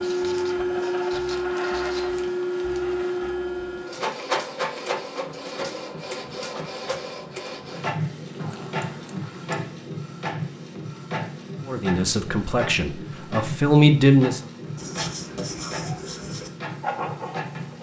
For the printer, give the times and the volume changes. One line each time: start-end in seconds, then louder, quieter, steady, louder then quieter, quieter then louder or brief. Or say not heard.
0.0-17.7 quieter.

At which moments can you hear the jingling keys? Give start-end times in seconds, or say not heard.
8.3-9.7.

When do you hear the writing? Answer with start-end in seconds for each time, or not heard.
0.0-2.1, 14.8-17.7.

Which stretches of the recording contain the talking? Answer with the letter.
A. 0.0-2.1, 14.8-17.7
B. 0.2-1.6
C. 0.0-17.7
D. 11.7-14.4
D.